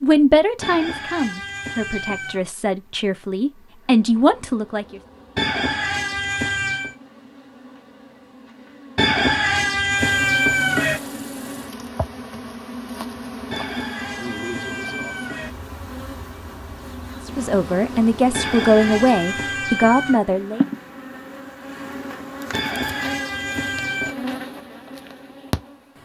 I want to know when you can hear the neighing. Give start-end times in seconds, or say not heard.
not heard.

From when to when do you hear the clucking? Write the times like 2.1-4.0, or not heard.
0.6-2.5, 5.3-7.0, 8.9-11.0, 13.5-15.5, 18.3-20.2, 22.5-24.1.